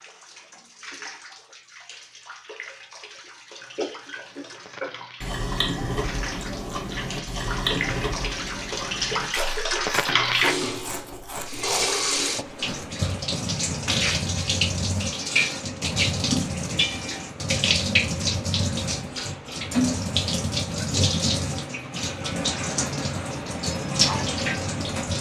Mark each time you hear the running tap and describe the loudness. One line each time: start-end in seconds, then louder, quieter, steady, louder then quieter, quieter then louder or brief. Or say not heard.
0.0-25.1 louder.